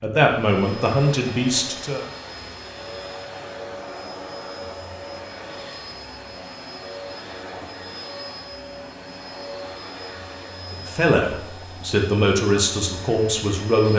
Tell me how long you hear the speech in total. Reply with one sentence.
The speech can be heard for 5 seconds in total.